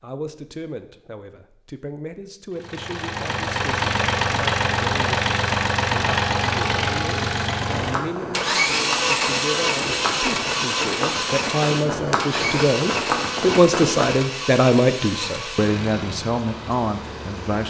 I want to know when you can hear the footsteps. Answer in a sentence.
You can hear the footsteps from 7.6 to 14.1 s.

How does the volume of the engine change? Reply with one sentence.
The loudness of the engine goes down.